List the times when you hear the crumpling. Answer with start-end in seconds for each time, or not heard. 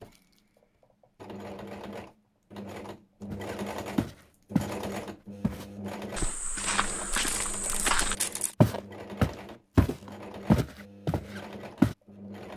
7.1-8.6.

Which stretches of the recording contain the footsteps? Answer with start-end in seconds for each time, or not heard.
3.3-4.8, 5.4-11.9.